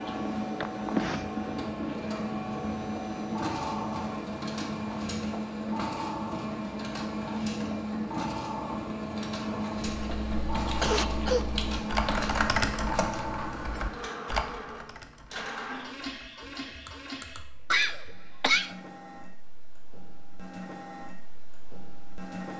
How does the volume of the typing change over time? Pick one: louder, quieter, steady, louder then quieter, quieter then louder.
louder then quieter.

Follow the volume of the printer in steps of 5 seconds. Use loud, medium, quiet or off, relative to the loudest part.
loud, loud, loud, medium, medium.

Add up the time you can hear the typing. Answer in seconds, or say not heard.
8 s.